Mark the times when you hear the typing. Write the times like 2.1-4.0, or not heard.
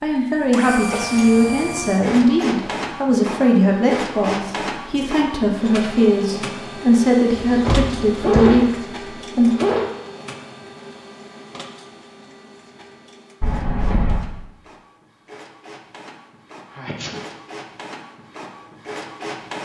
not heard.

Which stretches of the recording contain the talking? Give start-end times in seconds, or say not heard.
0.0-9.6.